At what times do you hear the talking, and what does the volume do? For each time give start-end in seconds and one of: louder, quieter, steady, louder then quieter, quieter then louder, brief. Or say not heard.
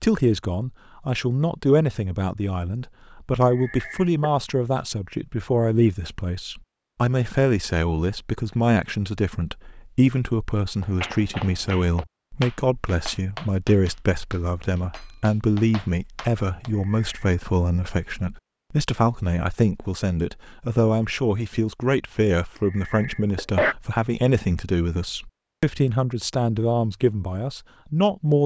0.0-28.4 steady.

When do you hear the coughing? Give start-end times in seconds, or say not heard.
3.4-4.3, 16.7-17.3, 22.6-23.8.